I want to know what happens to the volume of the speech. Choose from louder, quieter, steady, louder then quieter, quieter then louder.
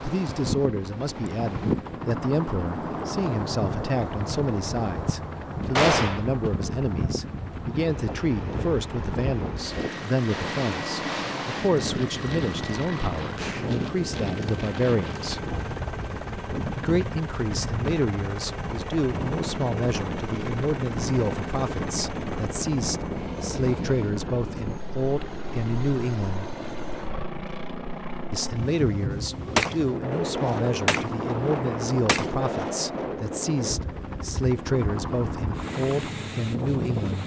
steady.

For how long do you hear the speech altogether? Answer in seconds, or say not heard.
34 s.